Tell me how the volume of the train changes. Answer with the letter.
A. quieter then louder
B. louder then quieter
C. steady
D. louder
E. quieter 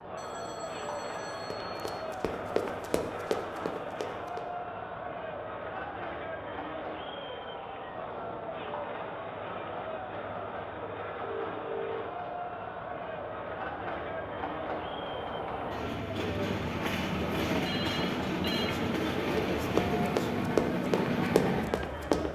D.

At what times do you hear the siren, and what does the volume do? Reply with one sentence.
The siren can't be heard in this clip.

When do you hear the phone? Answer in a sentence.
You can hear the phone from 0.1 to 1.9 s, from 11.2 to 12.1 s and from 17.6 to 18.8 s.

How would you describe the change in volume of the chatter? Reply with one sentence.
The volume of the chatter stays about the same.